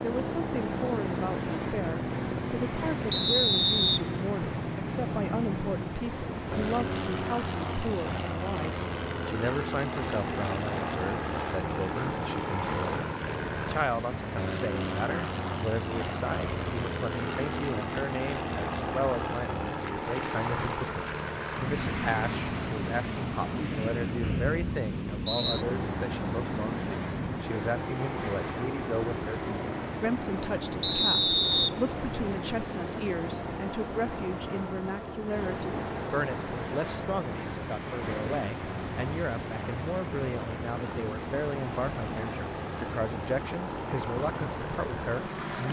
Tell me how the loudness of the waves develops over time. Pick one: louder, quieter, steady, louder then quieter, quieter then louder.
steady.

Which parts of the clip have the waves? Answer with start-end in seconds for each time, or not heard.
0.0-45.6.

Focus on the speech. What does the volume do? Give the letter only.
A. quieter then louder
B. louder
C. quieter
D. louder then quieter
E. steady
E.